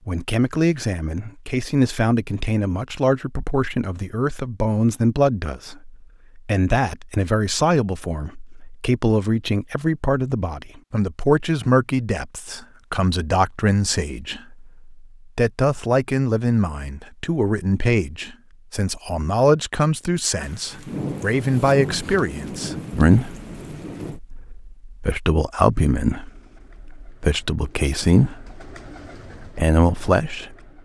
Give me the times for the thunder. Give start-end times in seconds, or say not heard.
20.4-24.2.